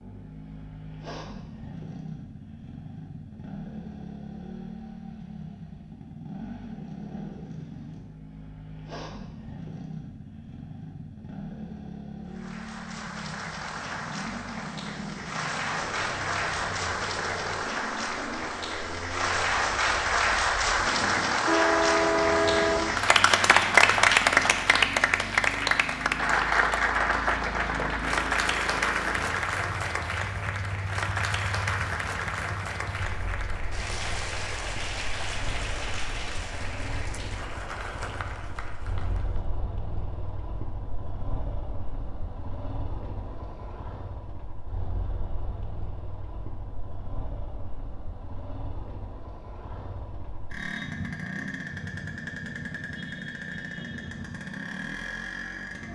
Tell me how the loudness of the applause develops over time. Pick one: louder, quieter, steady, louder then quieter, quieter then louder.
louder then quieter.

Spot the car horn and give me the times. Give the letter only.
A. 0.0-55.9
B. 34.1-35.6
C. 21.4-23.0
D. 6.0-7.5
C.